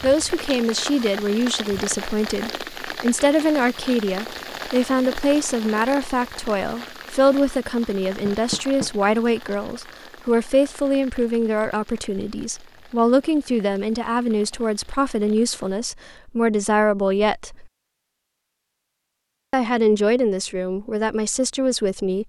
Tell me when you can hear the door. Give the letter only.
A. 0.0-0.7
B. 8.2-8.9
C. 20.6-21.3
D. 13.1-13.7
B.